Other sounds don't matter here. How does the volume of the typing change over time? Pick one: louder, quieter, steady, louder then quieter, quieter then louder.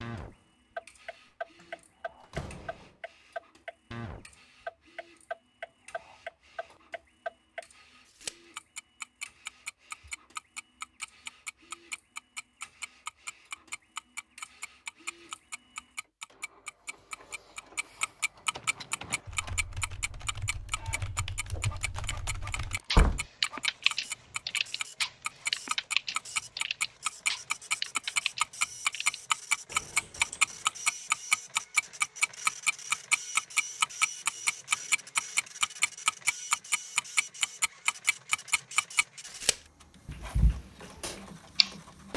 louder then quieter.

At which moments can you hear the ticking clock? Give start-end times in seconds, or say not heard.
0.0-42.1.